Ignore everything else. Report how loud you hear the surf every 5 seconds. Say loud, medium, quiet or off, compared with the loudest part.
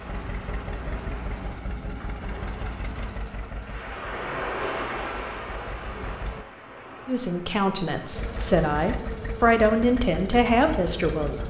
loud, loud, off.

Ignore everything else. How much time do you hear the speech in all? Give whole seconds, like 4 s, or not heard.
4 s.